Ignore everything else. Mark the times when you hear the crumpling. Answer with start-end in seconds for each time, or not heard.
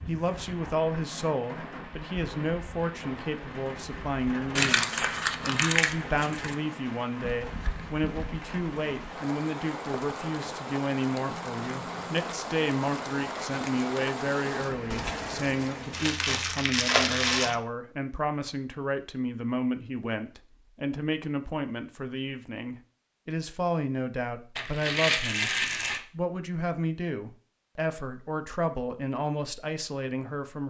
4.5-6.5, 15.9-17.6, 24.6-26.0.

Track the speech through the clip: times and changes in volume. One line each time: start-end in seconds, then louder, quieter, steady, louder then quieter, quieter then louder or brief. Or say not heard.
0.1-30.6 steady.